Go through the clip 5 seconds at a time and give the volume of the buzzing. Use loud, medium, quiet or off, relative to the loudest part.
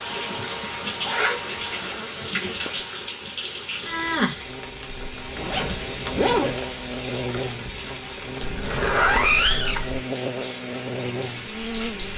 medium, loud, loud.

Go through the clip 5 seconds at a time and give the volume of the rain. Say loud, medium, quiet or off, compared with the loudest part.
loud, medium, medium.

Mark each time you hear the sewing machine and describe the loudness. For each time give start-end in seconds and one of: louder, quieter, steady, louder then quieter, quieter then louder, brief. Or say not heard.
not heard.